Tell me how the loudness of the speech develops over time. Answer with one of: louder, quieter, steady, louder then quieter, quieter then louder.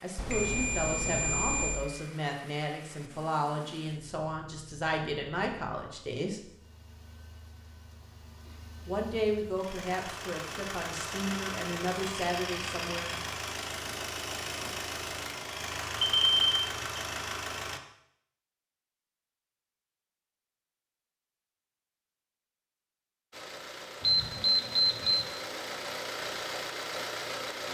steady.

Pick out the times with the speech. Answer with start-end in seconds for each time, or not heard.
0.0-6.4, 8.8-13.1.